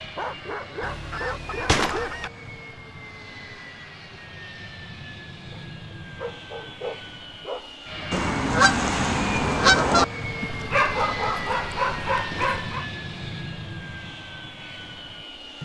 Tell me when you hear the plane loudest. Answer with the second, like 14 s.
11 s.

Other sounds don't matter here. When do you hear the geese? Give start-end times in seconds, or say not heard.
0.8-2.3, 8.1-10.1.